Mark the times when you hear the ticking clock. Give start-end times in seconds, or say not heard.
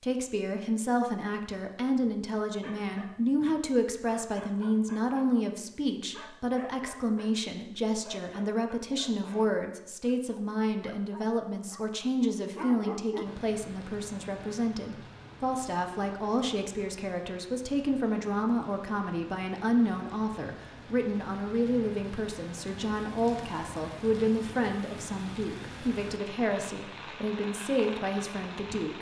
not heard.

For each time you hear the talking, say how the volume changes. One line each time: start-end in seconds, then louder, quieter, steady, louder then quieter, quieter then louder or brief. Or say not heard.
0.0-28.9 steady.